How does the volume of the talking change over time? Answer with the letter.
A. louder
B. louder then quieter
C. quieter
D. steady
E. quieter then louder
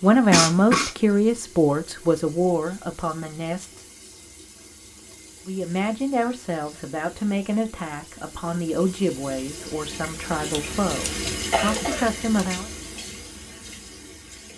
C.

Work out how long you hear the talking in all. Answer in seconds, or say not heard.
11 s.